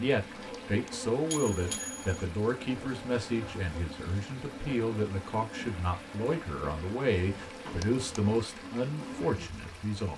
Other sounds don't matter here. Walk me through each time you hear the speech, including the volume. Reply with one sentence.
The speech can be heard from 0.0 to 10.1 s, at a steady volume.